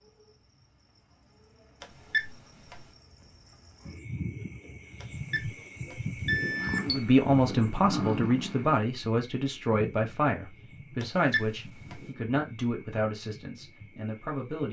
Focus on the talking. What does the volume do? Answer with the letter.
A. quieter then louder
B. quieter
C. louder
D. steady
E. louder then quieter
B.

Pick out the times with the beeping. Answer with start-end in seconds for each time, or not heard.
1.8-2.9, 5.0-7.0, 11.0-12.1.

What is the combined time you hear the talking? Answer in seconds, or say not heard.
8 s.